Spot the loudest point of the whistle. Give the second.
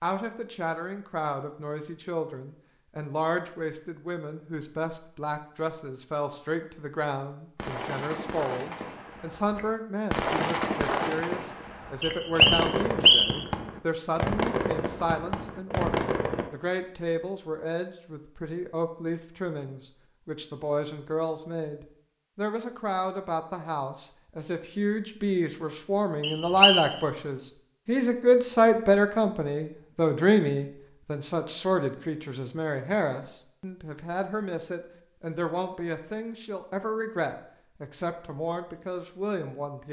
13 s.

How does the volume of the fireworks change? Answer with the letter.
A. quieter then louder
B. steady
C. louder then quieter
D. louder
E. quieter
D.